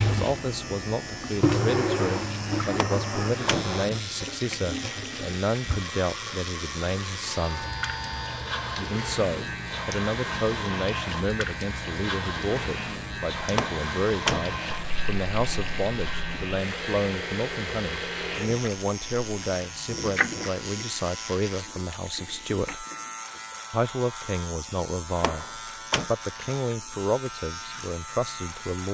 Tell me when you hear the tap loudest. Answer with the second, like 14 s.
2 s.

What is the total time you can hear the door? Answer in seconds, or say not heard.
3 s.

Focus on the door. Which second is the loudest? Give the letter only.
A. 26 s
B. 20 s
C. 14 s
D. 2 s
C.